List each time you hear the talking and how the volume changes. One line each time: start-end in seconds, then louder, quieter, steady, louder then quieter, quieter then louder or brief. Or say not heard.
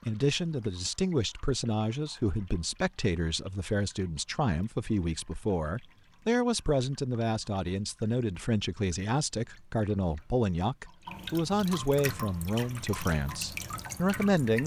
0.0-14.6 steady.